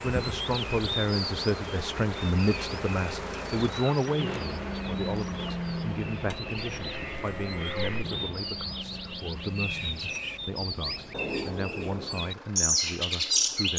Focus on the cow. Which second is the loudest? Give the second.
8 s.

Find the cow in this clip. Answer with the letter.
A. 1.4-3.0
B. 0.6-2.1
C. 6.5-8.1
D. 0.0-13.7
C.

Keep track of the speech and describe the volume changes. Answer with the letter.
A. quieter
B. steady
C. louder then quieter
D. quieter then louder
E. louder
A.